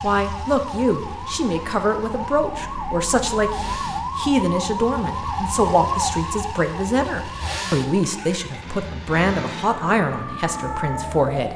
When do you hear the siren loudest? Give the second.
6 s.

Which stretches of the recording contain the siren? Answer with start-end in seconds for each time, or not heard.
0.0-11.5.